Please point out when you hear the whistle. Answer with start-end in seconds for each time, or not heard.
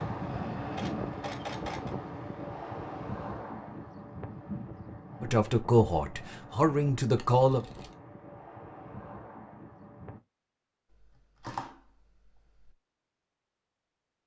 not heard.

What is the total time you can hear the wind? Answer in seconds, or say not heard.
10 s.